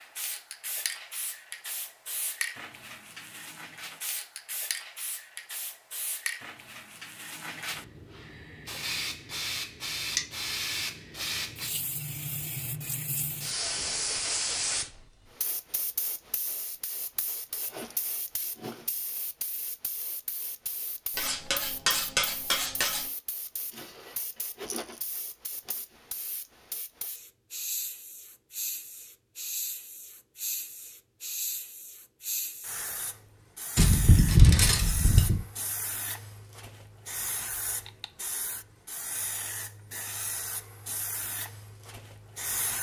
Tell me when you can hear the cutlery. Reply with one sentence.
You can hear the cutlery from 21.1 to 23.1 s and from 33.8 to 35.4 s.